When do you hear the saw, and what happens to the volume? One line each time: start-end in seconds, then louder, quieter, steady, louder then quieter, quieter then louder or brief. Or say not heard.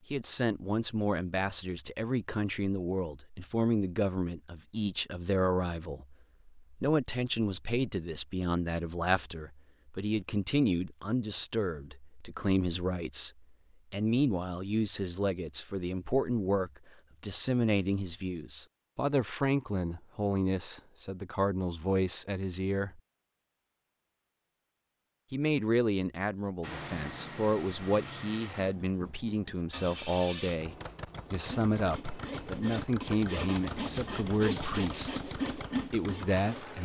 31.3-36.8 louder.